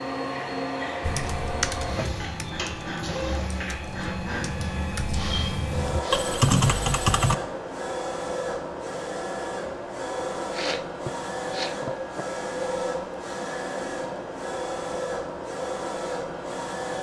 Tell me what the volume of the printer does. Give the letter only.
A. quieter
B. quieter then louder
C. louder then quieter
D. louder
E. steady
E.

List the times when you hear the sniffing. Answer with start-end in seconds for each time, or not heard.
5.1-6.2, 10.4-12.2.